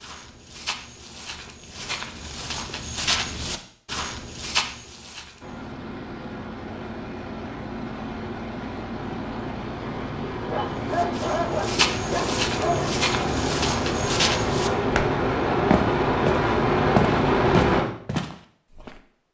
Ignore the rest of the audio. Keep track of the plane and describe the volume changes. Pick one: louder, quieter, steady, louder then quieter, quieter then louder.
louder.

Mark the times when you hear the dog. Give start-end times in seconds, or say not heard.
10.5-12.9.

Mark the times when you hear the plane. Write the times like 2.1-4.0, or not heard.
5.4-17.9.